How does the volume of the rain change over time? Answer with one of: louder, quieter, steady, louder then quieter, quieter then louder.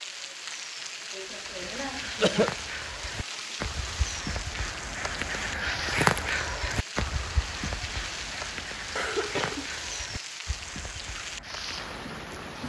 steady.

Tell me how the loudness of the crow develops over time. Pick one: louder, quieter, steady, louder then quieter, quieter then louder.
louder then quieter.